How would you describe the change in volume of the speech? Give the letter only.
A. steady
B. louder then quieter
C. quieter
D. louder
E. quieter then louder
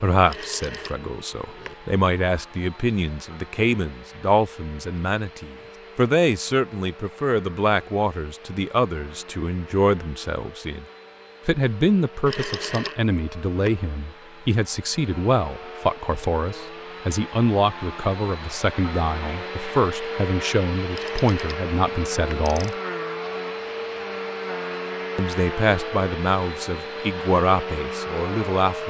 A.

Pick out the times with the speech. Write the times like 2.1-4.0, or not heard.
0.0-10.8, 11.4-22.8, 25.1-28.8.